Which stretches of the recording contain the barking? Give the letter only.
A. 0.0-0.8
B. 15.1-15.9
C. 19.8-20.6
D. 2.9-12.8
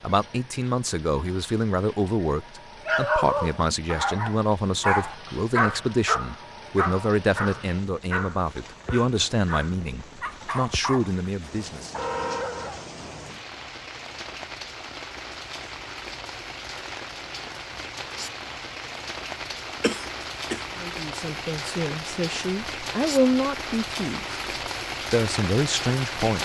D.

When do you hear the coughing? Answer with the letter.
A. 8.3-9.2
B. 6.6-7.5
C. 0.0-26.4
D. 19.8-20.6
D.